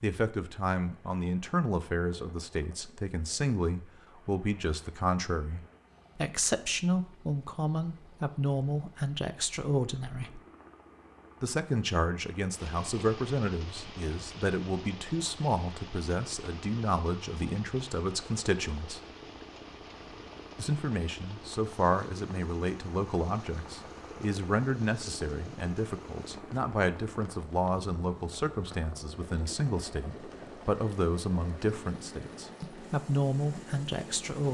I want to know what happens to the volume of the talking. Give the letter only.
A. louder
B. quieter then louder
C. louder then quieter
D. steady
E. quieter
D.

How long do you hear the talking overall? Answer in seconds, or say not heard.
32 s.